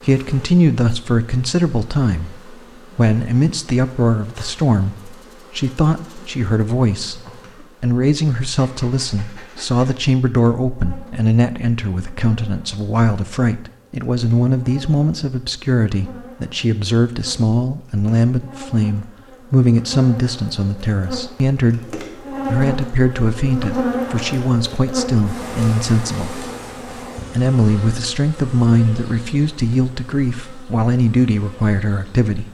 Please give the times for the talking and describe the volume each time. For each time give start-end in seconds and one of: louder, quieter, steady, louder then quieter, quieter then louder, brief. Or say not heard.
0.0-32.4 steady.